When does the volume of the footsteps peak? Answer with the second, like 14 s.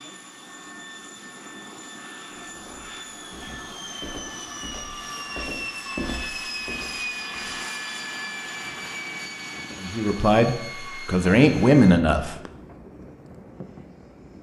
6 s.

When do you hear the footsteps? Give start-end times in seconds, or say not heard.
2.4-7.5.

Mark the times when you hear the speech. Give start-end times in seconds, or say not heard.
9.8-12.3.